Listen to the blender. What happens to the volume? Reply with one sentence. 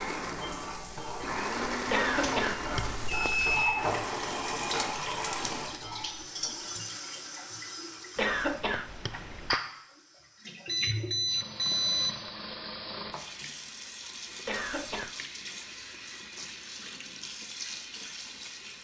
The loudness of the blender goes up, then down.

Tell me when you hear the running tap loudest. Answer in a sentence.
The volume of the running tap peaks at 5 seconds.